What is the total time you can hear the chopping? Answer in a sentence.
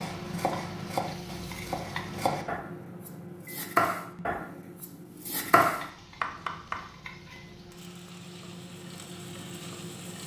The chopping can be heard for 7 seconds in total.